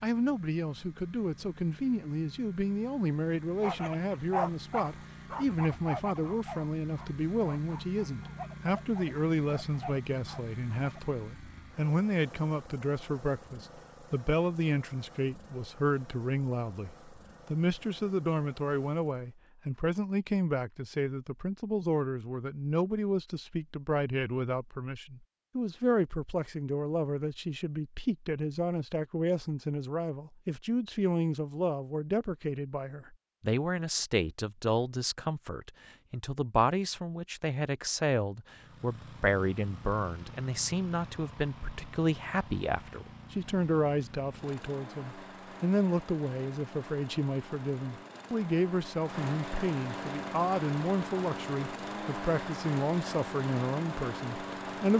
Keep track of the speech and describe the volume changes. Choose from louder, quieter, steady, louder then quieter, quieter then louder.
steady.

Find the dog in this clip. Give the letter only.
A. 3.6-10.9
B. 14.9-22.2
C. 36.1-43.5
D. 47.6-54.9
A.